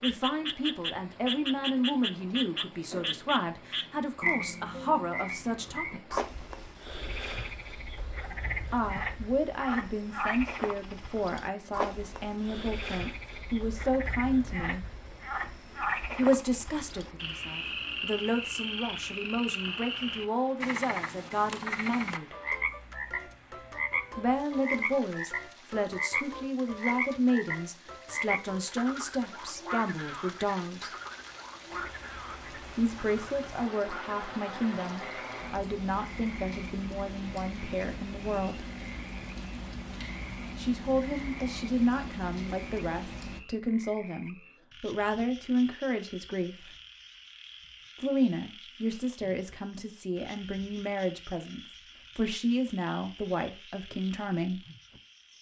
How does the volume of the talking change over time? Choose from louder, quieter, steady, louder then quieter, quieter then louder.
steady.